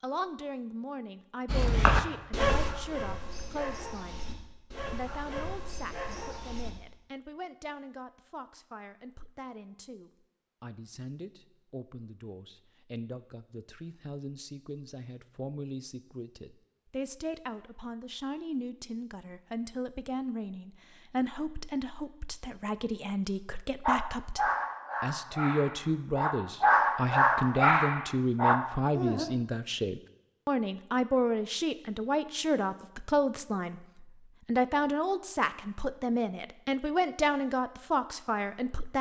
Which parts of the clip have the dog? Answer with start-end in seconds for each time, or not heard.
1.4-6.7, 23.9-29.2.